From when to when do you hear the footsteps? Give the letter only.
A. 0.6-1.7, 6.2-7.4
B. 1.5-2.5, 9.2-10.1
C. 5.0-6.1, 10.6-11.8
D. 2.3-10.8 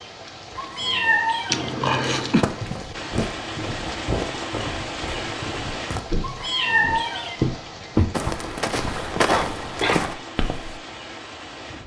D.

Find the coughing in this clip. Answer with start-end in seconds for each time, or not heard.
1.5-2.5, 9.2-10.1.